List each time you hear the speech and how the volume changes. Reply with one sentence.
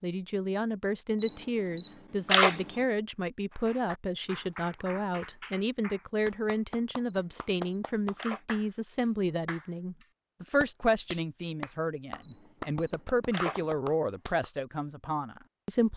You can hear the speech from 0.0 to 15.9 s, at a steady volume.